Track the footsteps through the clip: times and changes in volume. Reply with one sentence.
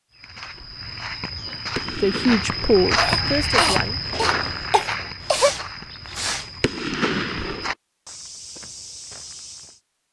The footsteps can be heard from 0.1 to 9.8 s, getting louder then quieter.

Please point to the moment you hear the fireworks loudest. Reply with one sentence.
The loudest moment of the fireworks is at 7 seconds.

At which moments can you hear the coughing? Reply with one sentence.
The coughing can be heard from 3.0 to 5.5 s.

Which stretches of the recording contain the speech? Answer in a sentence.
You can hear the speech from 1.9 to 4.0 s.